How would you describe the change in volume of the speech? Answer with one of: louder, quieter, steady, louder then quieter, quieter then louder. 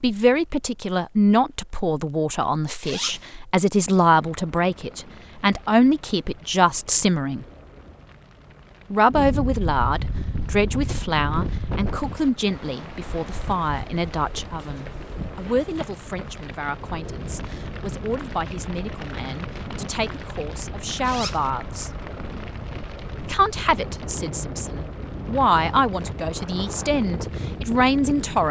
quieter then louder.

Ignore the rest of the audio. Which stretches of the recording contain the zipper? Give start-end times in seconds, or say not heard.
2.8-3.3, 21.0-21.5.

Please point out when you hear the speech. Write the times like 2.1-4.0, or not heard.
0.0-7.5, 8.9-21.9, 23.2-28.4.